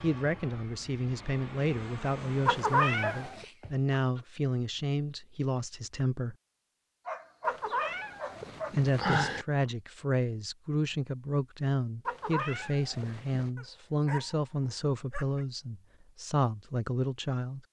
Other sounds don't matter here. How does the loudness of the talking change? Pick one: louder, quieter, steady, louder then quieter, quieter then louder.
steady.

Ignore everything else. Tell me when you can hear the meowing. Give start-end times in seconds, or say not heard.
2.5-3.5, 7.5-9.4, 12.1-13.5.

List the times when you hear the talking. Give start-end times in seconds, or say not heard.
0.0-6.3, 8.8-17.6.